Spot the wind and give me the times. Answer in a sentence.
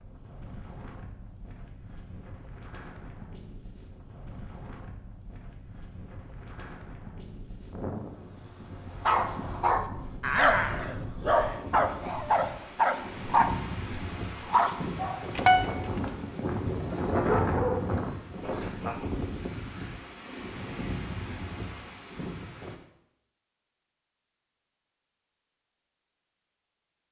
The wind can be heard from 0.0 to 22.8 s.